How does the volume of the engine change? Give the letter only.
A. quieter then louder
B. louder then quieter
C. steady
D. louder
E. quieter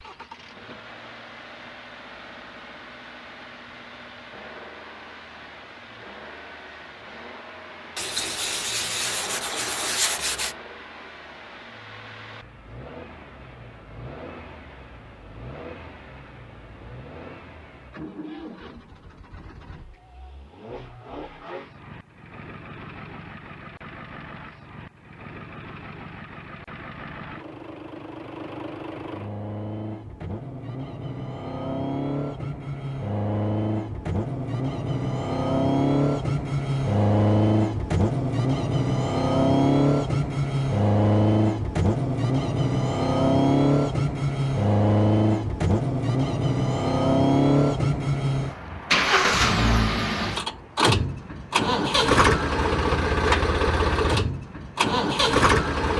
D.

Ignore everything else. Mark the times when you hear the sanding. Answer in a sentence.
You can hear the sanding from 8.0 to 10.6 s.